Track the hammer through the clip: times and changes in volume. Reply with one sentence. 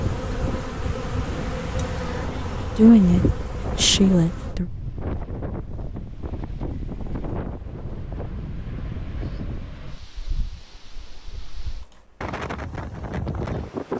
The hammer can't be heard in this clip.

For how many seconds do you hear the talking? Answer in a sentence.
You can hear the talking for 2 seconds altogether.